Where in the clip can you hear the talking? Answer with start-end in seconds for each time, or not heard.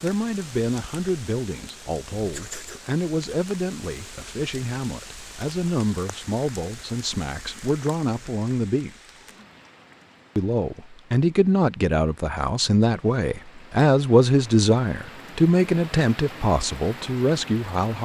0.0-8.9, 10.3-17.9.